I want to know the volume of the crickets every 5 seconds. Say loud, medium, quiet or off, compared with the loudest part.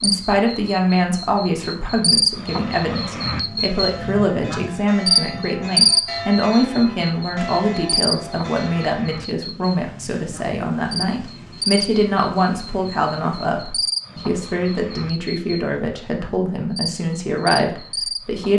loud, loud, medium, medium.